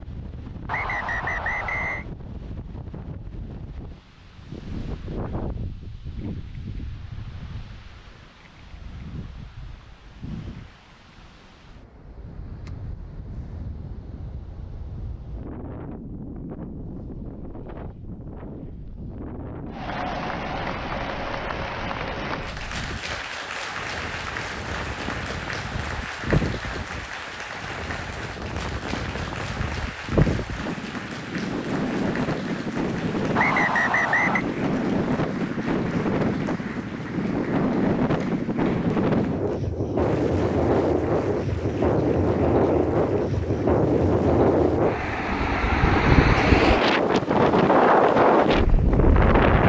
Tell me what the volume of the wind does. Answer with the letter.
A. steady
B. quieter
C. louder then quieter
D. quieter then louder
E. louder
E.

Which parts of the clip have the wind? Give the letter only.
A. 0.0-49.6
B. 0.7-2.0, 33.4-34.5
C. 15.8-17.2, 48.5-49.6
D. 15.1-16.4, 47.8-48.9
A.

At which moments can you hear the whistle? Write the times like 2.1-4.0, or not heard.
0.7-2.0, 33.4-34.5.